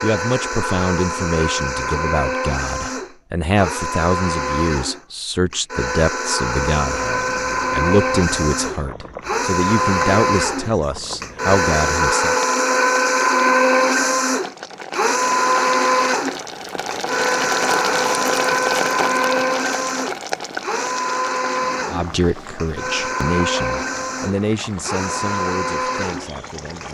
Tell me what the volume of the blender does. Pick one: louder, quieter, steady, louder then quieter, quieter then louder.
louder then quieter.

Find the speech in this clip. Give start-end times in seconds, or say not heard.
0.0-12.3, 21.9-26.8.